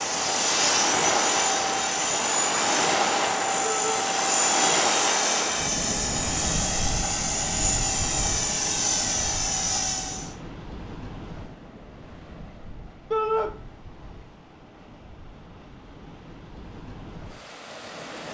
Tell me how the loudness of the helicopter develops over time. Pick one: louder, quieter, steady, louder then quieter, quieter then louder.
steady.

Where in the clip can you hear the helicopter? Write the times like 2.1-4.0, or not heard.
0.0-10.3.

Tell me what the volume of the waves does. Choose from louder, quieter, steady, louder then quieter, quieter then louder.
quieter.